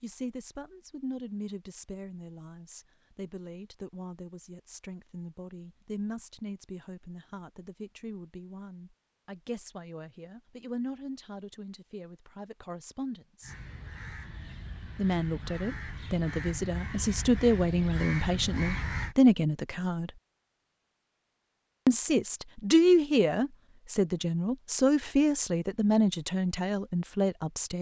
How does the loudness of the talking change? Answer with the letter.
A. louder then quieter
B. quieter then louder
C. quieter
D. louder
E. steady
D.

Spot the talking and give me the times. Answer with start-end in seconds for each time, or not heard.
0.0-13.6, 14.9-20.1, 21.9-27.7.